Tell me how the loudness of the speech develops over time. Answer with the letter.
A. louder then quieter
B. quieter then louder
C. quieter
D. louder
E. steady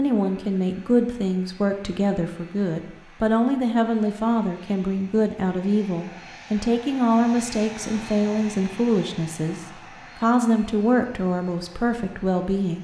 E.